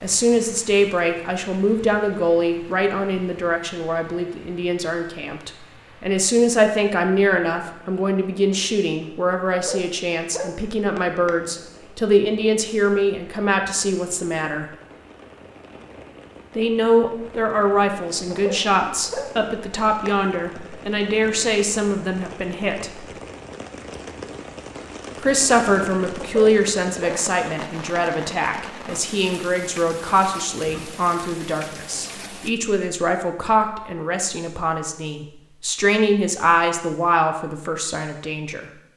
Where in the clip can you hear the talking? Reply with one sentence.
The talking can be heard from 0.0 to 14.7 s, from 16.6 to 23.0 s and from 25.2 to 38.7 s.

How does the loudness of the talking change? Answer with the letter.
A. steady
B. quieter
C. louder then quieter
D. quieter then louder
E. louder
A.